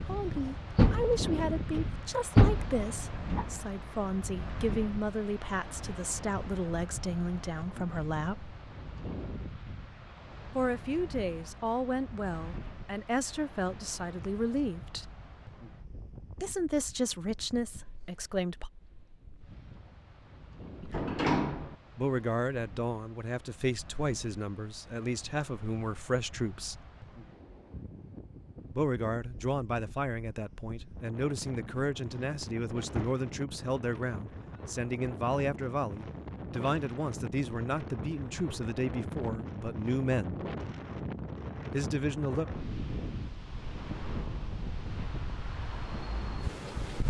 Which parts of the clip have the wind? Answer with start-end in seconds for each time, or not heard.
0.0-47.0.